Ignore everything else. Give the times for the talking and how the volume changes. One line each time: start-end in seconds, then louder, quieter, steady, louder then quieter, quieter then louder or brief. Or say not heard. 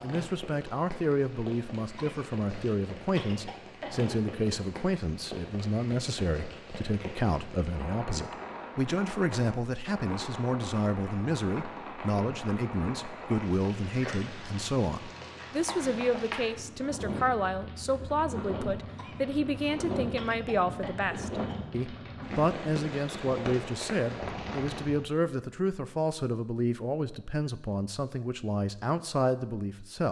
0.0-30.0 steady.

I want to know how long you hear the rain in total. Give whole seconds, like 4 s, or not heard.
25 s.